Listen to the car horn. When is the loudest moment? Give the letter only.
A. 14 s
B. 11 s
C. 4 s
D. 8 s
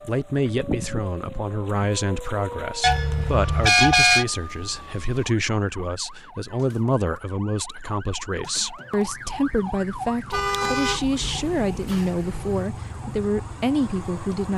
C.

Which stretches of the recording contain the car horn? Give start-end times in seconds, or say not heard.
2.8-4.2, 10.3-12.7.